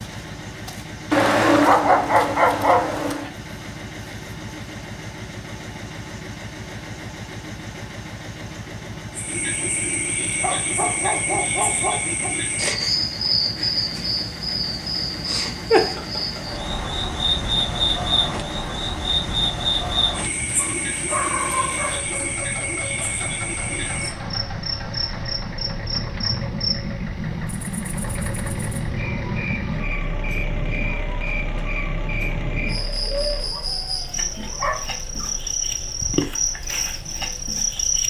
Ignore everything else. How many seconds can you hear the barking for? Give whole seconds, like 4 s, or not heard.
8 s.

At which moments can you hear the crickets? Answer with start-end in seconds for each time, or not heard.
9.2-38.0.